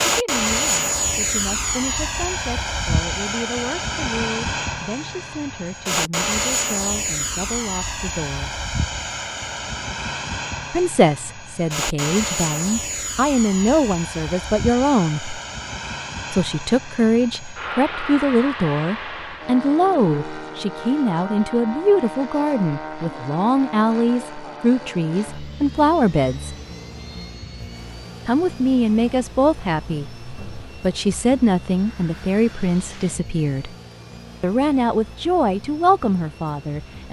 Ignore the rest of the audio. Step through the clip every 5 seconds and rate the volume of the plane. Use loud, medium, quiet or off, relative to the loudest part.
loud, loud, medium, medium, medium, quiet, quiet, quiet.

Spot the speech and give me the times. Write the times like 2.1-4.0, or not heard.
0.0-8.6, 10.7-15.4, 16.3-26.6, 28.2-33.8, 34.4-37.0.